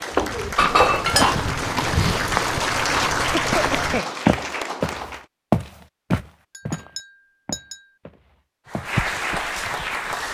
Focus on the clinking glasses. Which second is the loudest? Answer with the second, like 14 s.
1 s.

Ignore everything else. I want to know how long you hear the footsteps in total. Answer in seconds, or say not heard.
9 s.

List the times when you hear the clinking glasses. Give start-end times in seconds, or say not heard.
0.1-1.4, 6.5-7.8.